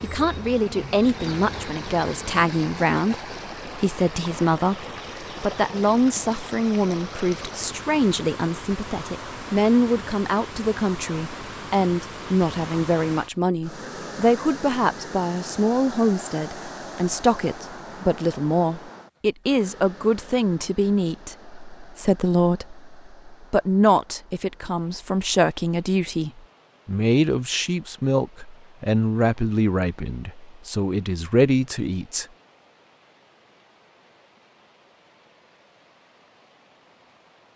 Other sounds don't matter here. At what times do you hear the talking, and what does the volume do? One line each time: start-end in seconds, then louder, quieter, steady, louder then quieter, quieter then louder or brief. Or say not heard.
0.0-32.2 steady.